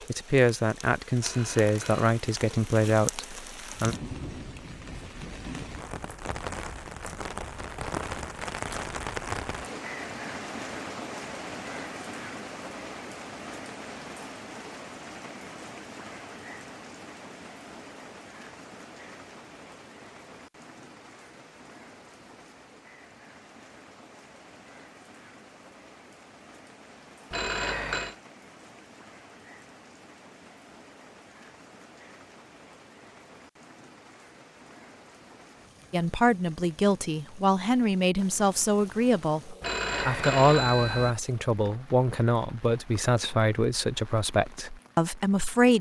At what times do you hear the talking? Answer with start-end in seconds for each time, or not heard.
0.1-4.0, 35.9-45.7.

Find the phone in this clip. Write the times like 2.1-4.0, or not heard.
1.1-2.1, 27.3-28.1, 39.6-41.1.